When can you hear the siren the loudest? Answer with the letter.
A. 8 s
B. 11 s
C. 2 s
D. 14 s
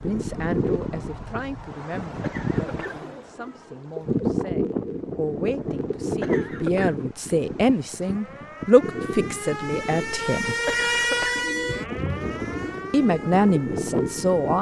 B.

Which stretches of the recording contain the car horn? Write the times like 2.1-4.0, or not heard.
not heard.